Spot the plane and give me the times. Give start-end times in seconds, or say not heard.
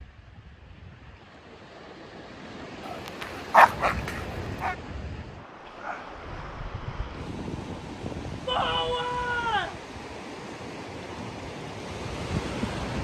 not heard.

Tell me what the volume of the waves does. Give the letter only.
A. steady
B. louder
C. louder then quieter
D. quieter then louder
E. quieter
B.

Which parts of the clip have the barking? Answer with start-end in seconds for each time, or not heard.
2.9-4.8.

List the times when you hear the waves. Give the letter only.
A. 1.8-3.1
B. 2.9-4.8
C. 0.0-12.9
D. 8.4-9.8
C.